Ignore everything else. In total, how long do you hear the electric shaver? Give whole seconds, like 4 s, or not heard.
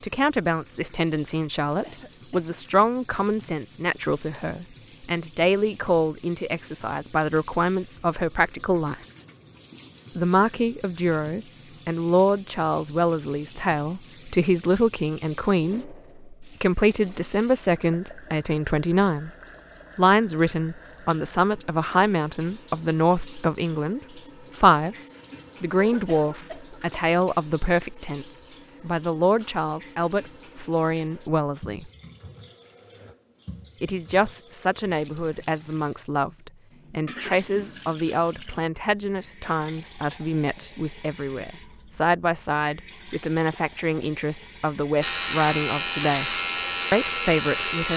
3 s.